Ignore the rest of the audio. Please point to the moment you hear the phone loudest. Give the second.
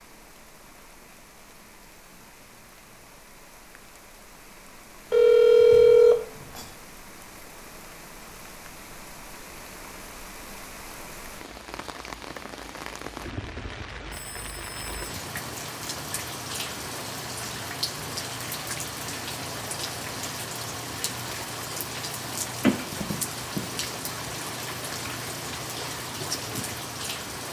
6 s.